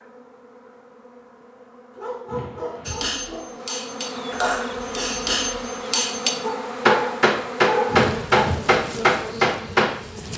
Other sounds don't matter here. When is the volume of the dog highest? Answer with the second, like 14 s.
8 s.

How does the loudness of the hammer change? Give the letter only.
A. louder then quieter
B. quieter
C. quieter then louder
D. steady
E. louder
E.